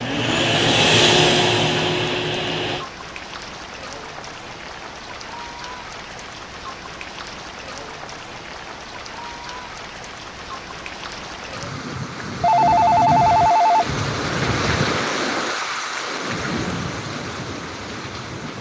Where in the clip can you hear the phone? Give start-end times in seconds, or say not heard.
12.4-13.8.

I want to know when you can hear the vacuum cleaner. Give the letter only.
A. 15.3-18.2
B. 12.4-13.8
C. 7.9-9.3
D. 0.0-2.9
D.